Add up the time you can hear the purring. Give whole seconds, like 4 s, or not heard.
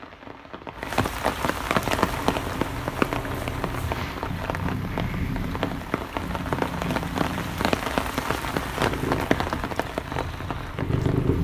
9 s.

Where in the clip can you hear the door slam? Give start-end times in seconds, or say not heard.
not heard.